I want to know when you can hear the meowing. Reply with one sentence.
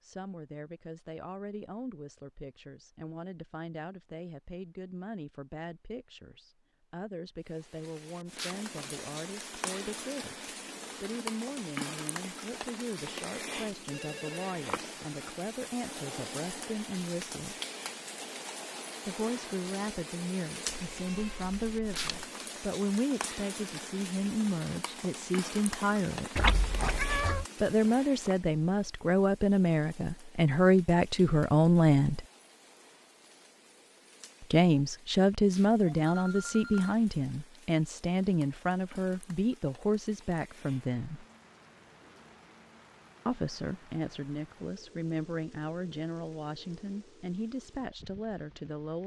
You can hear the meowing from 20.6 to 22.2 s and from 26.4 to 27.4 s.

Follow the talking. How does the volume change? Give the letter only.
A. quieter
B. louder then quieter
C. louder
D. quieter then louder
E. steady
B.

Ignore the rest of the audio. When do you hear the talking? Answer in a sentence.
The talking can be heard from 0.0 to 17.6 s, from 19.1 to 26.3 s, from 27.6 to 32.2 s, from 34.4 to 41.2 s and from 43.2 to 49.0 s.